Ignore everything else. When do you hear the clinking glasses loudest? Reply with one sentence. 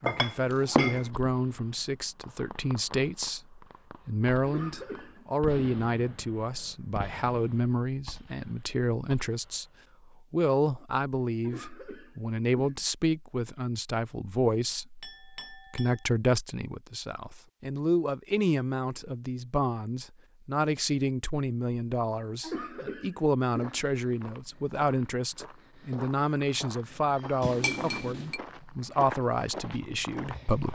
The volume of the clinking glasses peaks at 1 second.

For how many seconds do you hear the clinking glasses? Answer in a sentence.
You can hear the clinking glasses for 3 seconds altogether.